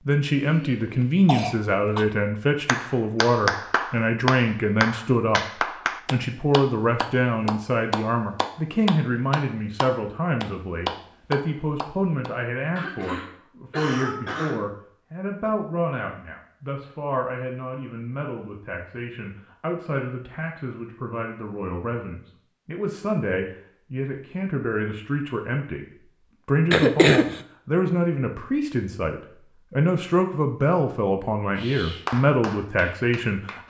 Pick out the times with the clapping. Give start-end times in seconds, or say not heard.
2.6-12.3, 31.6-33.6.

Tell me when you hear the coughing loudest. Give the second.
27 s.